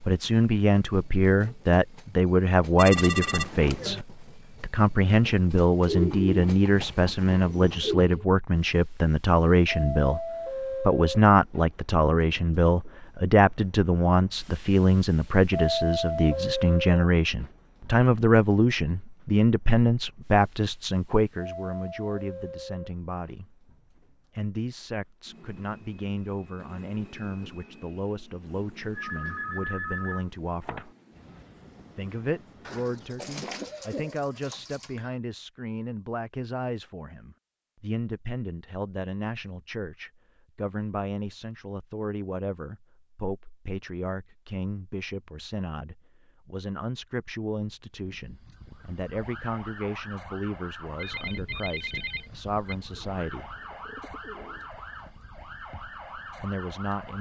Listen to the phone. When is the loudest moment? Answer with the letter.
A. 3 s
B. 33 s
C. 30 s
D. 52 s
A.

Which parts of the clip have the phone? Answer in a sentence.
The phone can be heard from 2.8 to 4.0 s, from 28.9 to 30.9 s and from 50.9 to 52.8 s.